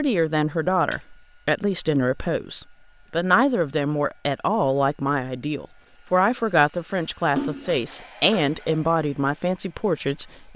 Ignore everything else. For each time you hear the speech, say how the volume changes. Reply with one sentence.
You can hear the speech from 0.0 to 10.5 s, at a steady volume.